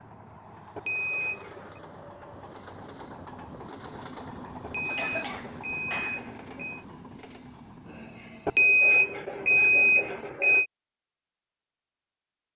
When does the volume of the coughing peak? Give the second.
5 s.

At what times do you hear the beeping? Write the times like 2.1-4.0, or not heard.
0.8-1.8, 4.6-6.8, 8.4-10.7.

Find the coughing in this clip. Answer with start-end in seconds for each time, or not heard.
4.9-6.3.